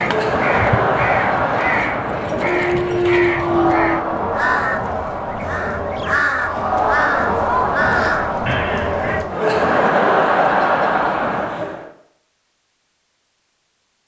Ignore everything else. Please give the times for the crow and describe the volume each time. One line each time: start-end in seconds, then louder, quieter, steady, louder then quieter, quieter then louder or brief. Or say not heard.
0.0-9.2 steady.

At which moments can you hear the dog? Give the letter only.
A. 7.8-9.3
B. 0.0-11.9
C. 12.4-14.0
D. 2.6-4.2
D.